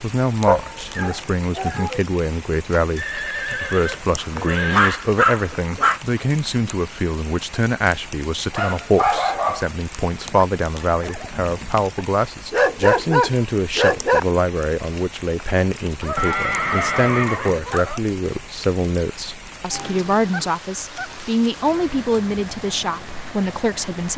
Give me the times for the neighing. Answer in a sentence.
You can hear the neighing from 3.0 to 5.0 s, from 10.2 to 11.8 s and from 16.1 to 17.6 s.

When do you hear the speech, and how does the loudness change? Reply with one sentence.
You can hear the speech from 0.0 to 24.1 s, at a steady volume.